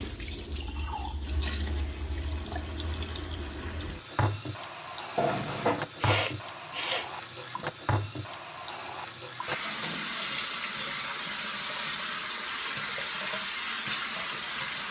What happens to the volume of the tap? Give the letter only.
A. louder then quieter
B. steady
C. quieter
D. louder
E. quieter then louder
D.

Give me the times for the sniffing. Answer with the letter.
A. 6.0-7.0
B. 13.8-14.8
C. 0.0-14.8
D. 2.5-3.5
A.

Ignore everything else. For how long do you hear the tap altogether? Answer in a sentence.
The tap can be heard for 15 seconds in total.